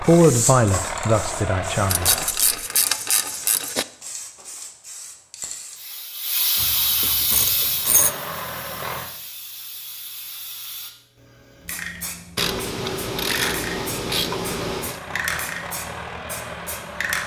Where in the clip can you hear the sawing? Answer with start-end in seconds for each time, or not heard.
not heard.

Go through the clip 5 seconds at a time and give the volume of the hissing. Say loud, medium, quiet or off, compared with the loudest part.
loud, loud, medium, loud.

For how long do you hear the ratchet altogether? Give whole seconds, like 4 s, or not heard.
6 s.